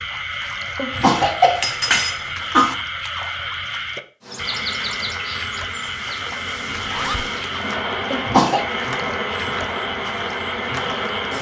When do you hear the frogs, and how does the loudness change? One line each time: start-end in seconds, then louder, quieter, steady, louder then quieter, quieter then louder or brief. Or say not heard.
0.0-11.3 steady.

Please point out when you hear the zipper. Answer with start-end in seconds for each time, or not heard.
6.8-7.2.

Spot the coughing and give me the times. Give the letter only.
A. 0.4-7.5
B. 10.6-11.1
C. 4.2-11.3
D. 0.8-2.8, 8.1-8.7
D.